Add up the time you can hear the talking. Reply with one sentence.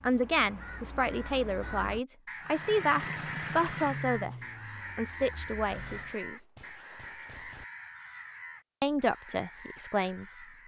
You can hear the talking for 8 seconds altogether.